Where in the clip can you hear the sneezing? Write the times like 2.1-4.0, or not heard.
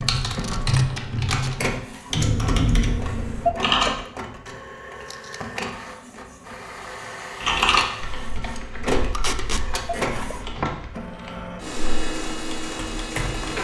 3.5-3.9, 10.0-10.4.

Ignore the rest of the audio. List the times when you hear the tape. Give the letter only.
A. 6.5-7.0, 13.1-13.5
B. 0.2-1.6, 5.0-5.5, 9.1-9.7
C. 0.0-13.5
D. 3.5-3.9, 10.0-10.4
B.